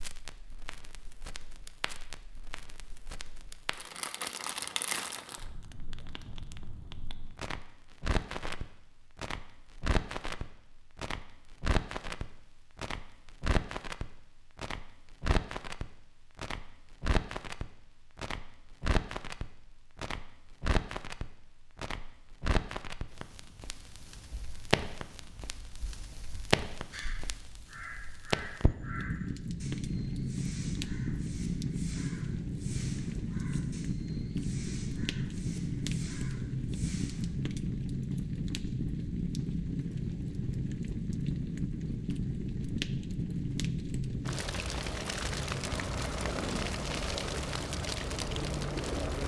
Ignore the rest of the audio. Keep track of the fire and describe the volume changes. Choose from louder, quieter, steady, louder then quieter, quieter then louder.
louder.